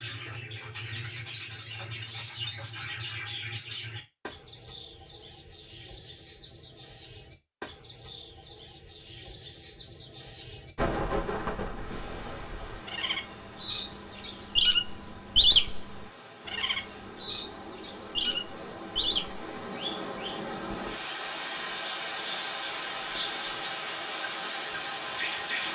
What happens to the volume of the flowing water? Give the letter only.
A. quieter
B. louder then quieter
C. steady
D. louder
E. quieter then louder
D.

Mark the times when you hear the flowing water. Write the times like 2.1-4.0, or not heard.
11.8-25.7.